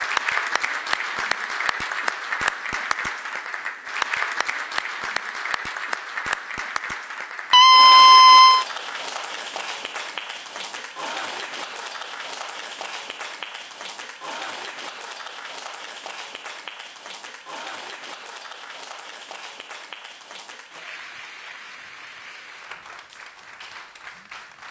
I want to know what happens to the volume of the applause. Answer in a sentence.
The volume of the applause goes down.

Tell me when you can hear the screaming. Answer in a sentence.
The screaming can be heard from 7.5 to 8.7 s.